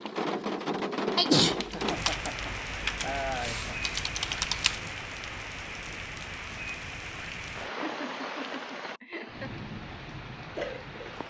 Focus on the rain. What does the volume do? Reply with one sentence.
The volume of the rain goes down.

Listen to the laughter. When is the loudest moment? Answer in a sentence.
The volume of the laughter peaks at 3 seconds.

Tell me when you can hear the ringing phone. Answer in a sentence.
You can't hear the ringing phone here.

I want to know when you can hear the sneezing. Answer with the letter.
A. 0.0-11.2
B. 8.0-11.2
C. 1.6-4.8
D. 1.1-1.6
D.